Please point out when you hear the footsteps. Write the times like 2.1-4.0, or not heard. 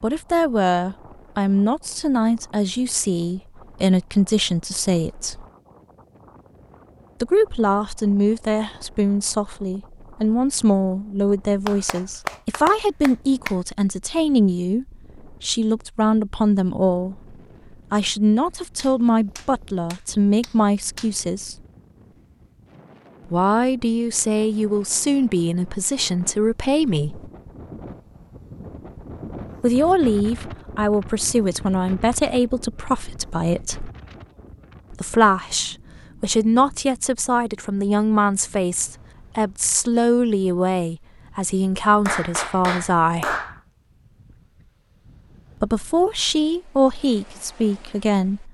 not heard.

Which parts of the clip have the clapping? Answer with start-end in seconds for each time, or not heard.
11.7-13.6, 18.8-21.1, 42.0-43.6.